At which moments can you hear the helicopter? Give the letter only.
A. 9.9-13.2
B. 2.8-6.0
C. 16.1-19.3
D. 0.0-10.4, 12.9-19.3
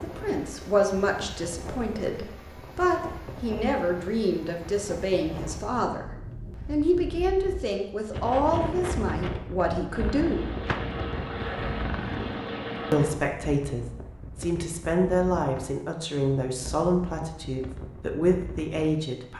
A.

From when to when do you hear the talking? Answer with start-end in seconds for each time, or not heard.
0.0-10.4, 12.9-19.3.